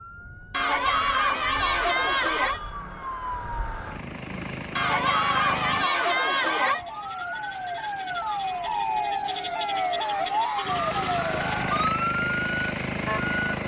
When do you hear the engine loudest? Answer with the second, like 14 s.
13 s.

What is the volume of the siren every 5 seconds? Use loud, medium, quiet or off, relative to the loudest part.
quiet, loud, loud.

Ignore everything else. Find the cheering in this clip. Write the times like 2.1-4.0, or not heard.
0.5-2.6, 4.8-6.8, 9.7-11.7.